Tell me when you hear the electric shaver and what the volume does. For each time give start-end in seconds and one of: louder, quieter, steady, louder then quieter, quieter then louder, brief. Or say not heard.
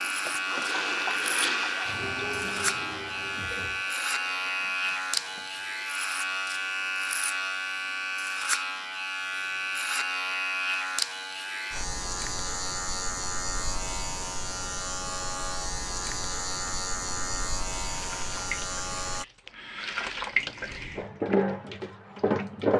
0.0-19.2 steady.